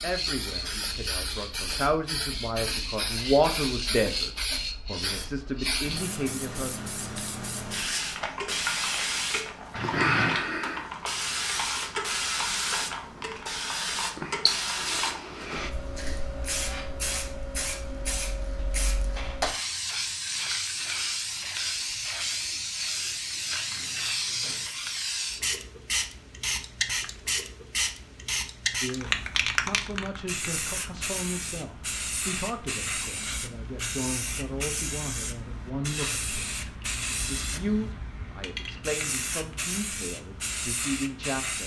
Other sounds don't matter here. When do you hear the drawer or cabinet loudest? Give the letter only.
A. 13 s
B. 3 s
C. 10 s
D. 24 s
C.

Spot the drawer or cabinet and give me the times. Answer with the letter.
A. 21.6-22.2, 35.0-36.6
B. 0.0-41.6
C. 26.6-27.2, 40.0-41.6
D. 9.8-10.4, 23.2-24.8
D.